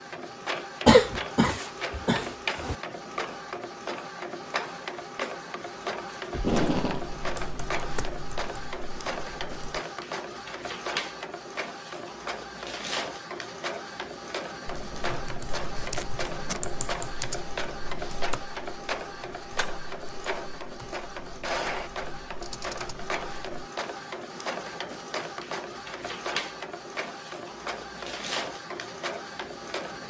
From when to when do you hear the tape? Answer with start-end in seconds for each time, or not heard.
6.3-7.0, 15.8-16.6.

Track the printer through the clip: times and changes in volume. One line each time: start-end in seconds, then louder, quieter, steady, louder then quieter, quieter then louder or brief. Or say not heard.
0.0-30.0 steady.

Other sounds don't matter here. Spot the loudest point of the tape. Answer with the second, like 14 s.
7 s.